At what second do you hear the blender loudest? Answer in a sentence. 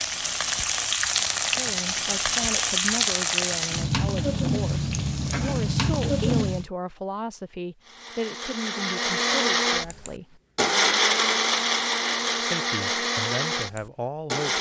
The loudest moment of the blender is at 11 seconds.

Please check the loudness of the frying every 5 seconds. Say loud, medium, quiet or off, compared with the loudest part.
loud, loud, off.